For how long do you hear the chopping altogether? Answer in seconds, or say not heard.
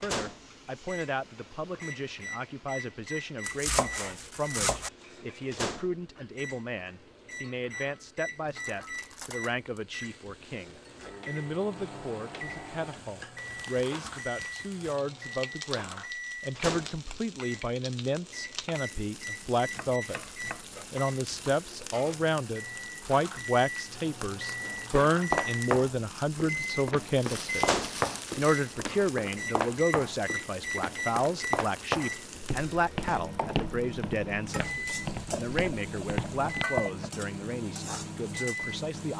5 s.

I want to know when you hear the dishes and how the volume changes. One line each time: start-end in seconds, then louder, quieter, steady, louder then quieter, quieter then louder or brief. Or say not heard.
not heard.